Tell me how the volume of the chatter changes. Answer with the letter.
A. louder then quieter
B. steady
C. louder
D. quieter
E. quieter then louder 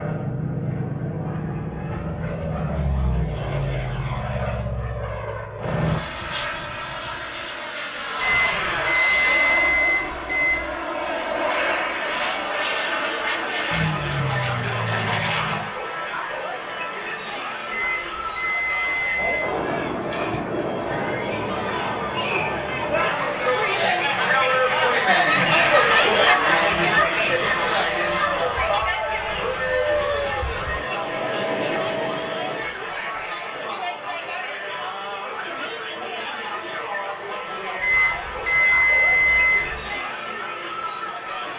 A.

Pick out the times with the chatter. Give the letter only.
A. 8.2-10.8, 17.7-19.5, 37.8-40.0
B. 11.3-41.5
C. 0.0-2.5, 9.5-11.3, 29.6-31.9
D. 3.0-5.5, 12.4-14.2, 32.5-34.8
B.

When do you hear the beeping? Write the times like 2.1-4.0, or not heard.
8.2-10.8, 17.7-19.5, 37.8-40.0.